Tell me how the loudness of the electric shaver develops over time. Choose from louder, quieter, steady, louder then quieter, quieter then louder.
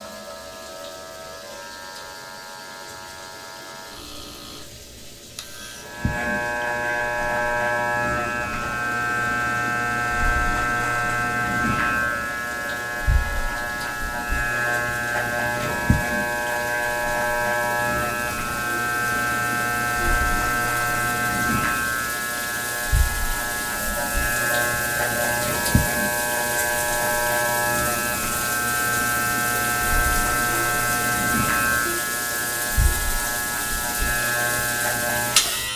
louder.